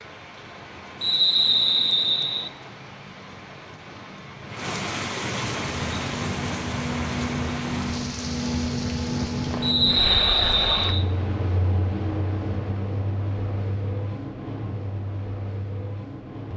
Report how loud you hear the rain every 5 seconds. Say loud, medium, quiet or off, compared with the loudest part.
medium, loud, off, off.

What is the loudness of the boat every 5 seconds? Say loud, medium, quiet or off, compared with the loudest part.
off, loud, loud, medium.